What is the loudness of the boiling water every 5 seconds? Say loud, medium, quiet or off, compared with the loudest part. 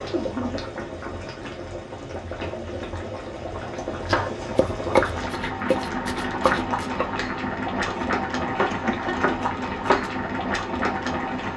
medium, loud, loud.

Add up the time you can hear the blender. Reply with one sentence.
The blender can't be heard in this clip.